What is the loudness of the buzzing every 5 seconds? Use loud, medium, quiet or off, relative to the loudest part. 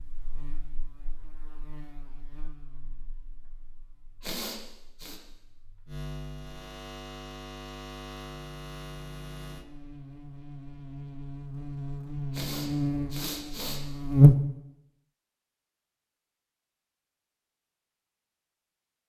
quiet, quiet, loud, off.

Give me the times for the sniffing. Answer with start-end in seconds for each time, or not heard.
4.2-5.2, 12.3-13.8.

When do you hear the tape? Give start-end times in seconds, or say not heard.
not heard.